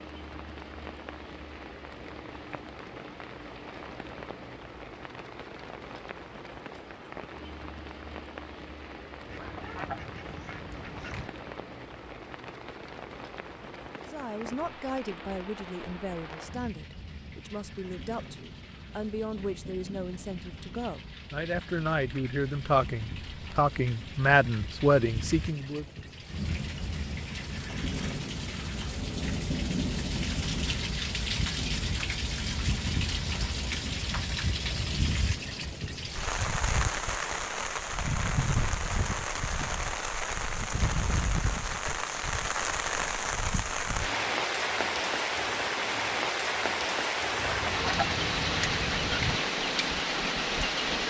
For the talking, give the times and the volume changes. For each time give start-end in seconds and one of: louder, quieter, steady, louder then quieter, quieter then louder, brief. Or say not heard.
14.0-25.9 louder.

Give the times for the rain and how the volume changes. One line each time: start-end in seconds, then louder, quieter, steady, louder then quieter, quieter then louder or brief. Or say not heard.
0.0-51.0 louder.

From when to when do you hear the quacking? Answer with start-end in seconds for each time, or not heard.
9.2-11.3, 47.4-49.4.